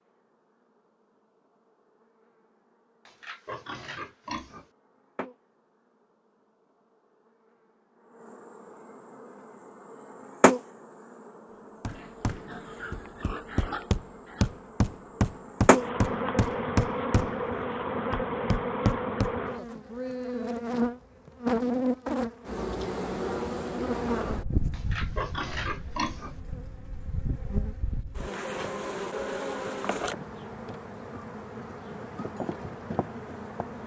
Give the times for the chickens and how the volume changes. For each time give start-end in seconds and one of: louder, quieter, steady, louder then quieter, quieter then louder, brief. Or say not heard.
not heard.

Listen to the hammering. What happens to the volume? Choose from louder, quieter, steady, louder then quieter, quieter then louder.
louder.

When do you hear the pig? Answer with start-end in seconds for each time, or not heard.
3.0-4.7, 11.8-14.5, 24.7-26.4.